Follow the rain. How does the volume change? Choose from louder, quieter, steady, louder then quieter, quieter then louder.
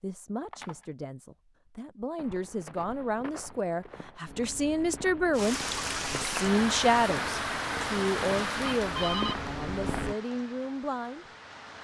quieter.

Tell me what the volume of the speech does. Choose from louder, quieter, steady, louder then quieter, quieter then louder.
louder then quieter.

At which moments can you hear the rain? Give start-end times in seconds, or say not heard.
5.3-11.8.